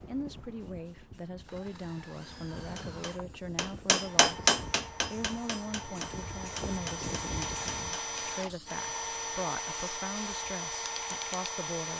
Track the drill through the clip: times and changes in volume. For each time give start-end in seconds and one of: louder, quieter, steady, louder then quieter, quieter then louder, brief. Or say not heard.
0.0-11.9 louder.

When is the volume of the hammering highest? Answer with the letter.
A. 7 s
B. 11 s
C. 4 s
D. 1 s
C.